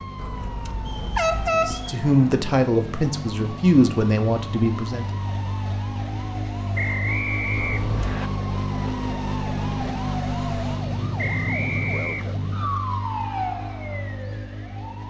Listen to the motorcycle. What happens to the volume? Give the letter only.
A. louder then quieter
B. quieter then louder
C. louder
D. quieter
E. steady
A.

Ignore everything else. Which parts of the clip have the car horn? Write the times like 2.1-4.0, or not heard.
0.1-1.9, 7.5-8.2.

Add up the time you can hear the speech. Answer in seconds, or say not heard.
4 s.